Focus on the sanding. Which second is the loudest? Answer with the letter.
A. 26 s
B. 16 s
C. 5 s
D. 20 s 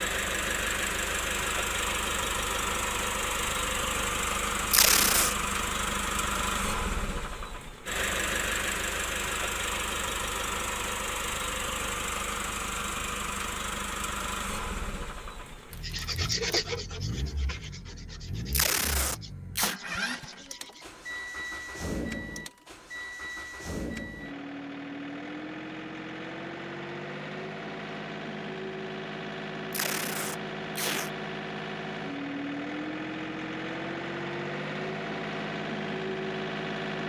B.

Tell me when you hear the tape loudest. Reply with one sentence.
The volume of the tape peaks at 5 seconds.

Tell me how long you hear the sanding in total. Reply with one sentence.
The sanding can be heard for 5 seconds in total.